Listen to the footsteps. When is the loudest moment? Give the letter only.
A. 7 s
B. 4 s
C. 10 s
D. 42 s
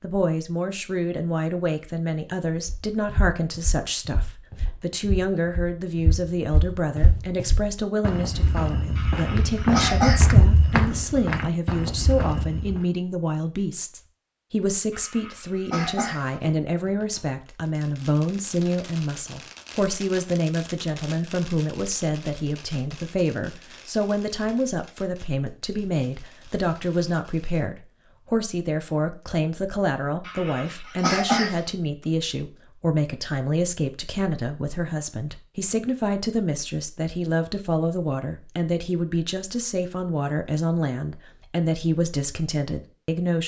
C.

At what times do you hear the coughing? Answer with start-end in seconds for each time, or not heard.
8.9-10.2, 14.9-16.4, 30.2-31.6.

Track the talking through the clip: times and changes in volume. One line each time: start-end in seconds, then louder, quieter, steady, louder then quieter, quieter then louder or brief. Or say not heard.
0.0-43.4 steady.